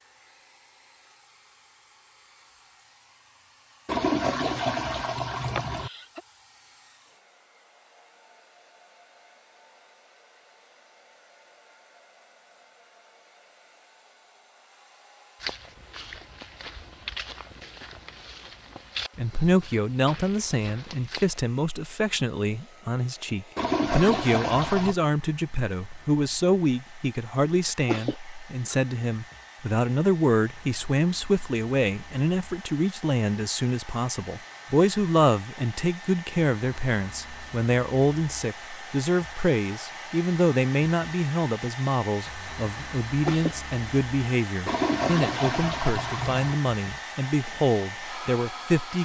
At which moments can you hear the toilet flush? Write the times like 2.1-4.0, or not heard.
3.9-5.9, 23.6-24.9, 44.6-46.6.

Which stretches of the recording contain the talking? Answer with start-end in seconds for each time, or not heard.
19.1-49.0.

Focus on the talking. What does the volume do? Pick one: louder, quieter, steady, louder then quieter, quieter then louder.
steady.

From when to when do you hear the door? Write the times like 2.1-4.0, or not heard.
not heard.